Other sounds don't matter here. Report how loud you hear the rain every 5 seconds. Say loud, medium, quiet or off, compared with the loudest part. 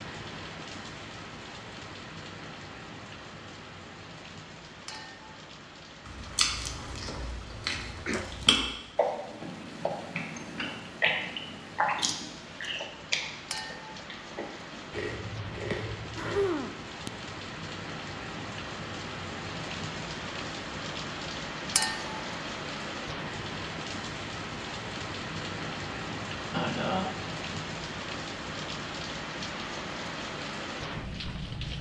medium, quiet, medium, loud, loud, loud, loud.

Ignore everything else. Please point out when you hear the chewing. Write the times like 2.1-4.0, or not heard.
6.0-16.5.